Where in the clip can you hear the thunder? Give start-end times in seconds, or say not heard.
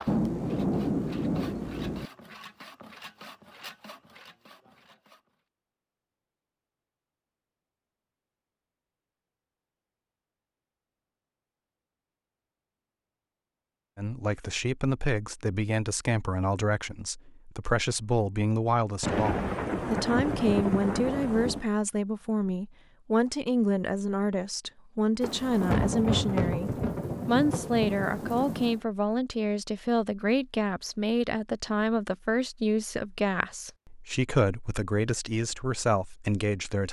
0.1-2.1, 19.0-21.6, 25.2-28.8.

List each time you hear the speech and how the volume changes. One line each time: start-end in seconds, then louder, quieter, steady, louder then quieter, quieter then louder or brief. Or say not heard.
13.9-36.8 steady.